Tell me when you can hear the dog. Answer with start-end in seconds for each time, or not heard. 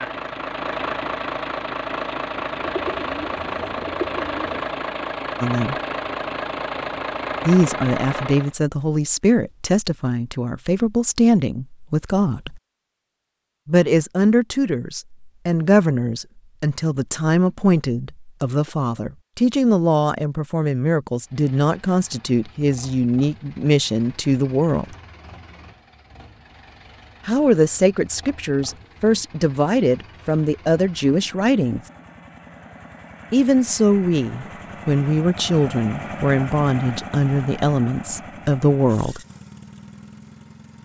not heard.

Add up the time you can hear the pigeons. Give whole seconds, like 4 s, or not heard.
2 s.